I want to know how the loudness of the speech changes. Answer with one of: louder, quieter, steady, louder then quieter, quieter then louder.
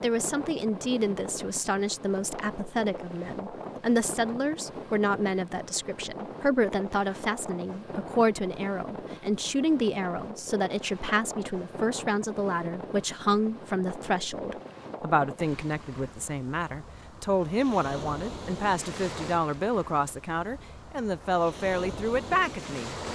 steady.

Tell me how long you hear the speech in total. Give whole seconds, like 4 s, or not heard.
23 s.